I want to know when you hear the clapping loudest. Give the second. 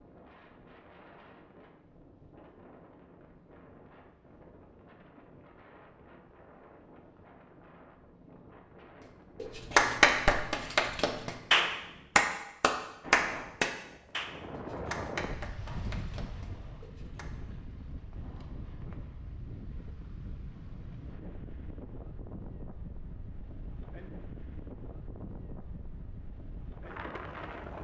10 s.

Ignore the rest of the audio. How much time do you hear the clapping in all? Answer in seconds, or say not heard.
8 s.